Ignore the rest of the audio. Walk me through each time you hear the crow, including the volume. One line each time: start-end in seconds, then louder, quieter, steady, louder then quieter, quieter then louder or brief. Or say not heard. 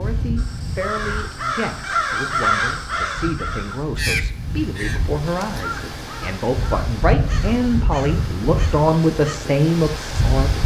0.3-9.4 quieter.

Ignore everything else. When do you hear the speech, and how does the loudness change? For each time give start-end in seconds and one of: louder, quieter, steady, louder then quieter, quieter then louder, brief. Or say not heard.
0.0-10.6 louder.